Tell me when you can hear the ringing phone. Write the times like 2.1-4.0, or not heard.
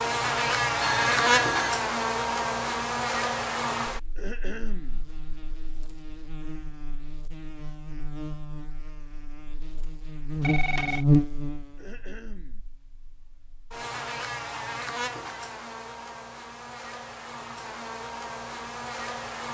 0.8-1.8, 10.4-11.1.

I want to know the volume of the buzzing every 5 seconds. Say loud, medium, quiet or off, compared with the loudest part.
loud, quiet, loud, medium.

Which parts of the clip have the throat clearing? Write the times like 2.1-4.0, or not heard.
4.2-5.0, 11.8-12.6.